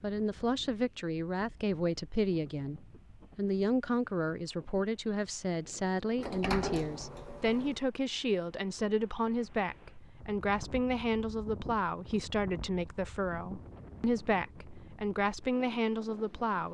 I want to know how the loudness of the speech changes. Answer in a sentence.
The loudness of the speech stays about the same.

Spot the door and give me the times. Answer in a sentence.
The door can be heard from 6.2 to 7.8 s.